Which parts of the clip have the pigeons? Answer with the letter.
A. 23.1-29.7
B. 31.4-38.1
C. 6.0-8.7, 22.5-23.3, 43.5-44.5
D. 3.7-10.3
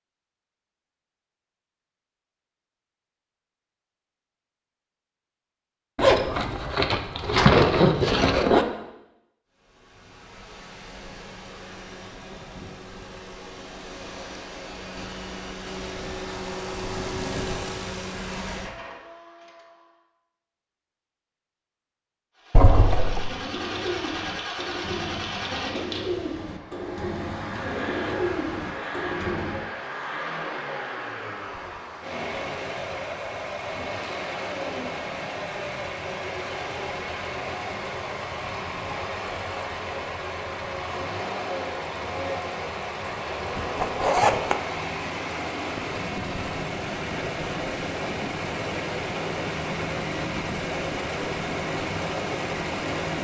A.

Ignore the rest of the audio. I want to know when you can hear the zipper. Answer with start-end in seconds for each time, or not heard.
6.0-8.7, 22.5-23.3, 43.5-44.5.